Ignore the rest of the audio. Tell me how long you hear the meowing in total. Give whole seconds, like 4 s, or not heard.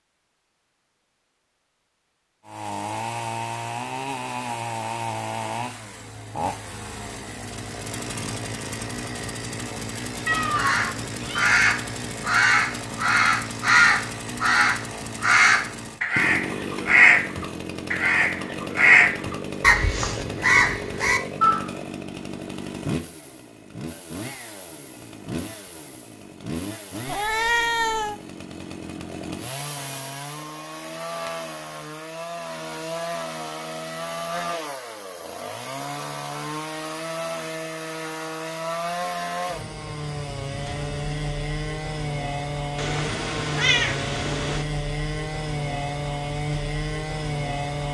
4 s.